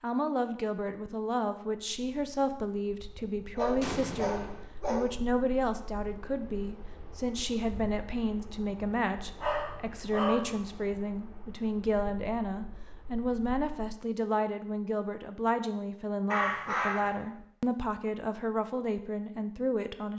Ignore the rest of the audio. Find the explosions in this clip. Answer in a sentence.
You can hear the explosions from 3.8 to 4.7 s.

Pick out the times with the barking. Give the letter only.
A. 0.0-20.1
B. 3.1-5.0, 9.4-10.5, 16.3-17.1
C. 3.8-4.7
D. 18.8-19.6
B.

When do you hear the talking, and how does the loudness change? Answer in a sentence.
The talking can be heard from 0.0 to 20.1 s, at a steady volume.